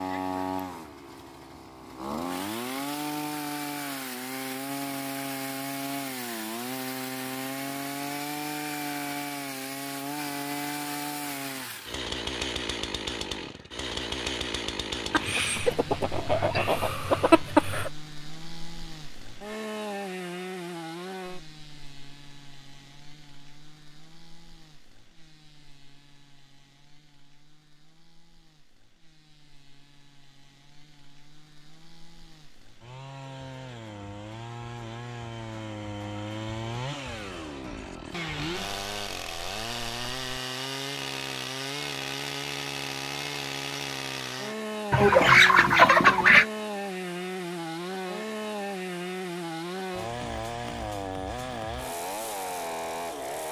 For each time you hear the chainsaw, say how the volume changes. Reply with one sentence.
You can hear the chainsaw from 0.0 to 53.4 s, getting quieter then louder.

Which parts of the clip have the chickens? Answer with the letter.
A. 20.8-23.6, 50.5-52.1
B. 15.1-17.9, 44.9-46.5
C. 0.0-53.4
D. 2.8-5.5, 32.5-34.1
B.